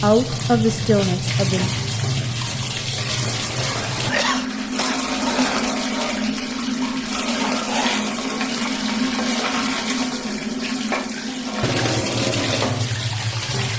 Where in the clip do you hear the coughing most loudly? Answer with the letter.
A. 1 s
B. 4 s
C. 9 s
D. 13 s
B.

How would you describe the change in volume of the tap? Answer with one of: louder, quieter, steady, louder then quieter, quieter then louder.
steady.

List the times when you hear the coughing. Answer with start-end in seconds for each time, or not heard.
3.6-5.6.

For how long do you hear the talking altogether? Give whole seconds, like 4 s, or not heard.
2 s.